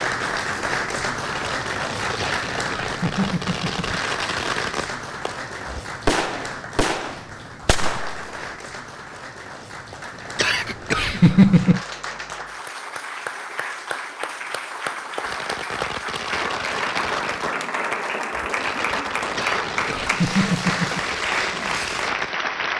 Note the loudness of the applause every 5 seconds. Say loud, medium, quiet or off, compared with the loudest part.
loud, medium, medium, loud, loud.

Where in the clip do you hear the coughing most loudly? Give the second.
11 s.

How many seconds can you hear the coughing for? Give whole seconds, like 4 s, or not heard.
5 s.